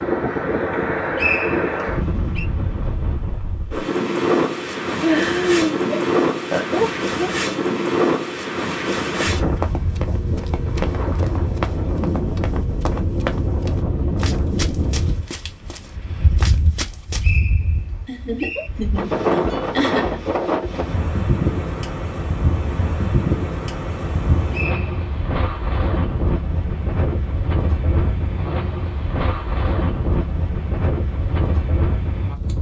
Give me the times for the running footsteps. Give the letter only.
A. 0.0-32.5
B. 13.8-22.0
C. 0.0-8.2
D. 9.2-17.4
D.